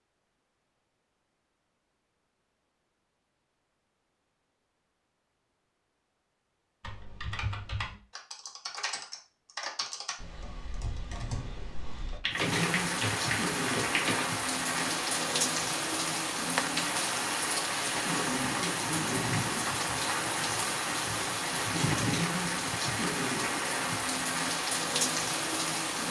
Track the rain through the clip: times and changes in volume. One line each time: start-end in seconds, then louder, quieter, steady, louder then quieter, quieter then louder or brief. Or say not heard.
12.3-26.0 steady.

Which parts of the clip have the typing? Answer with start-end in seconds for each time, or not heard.
6.8-15.2.